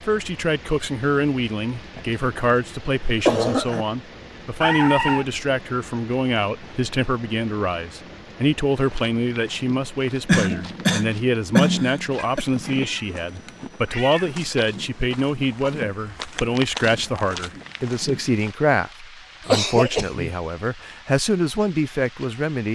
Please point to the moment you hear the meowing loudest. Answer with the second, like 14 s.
5 s.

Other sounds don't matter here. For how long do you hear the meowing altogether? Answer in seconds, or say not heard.
3 s.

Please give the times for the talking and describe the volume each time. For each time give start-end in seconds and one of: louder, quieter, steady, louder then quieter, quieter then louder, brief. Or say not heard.
0.1-22.6 steady.